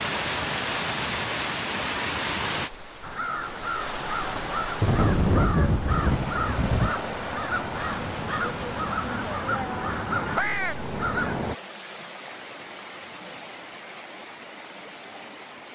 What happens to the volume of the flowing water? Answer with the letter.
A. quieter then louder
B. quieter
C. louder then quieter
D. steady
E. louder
B.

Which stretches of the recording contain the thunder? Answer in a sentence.
You can hear the thunder from 4.3 to 7.0 s.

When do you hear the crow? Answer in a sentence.
The crow can be heard from 3.0 to 11.6 s.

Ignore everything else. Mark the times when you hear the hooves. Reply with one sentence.
You can't hear the hooves here.